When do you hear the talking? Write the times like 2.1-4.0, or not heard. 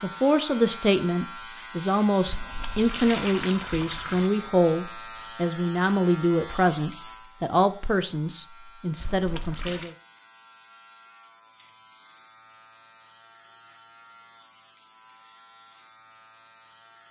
0.0-9.9.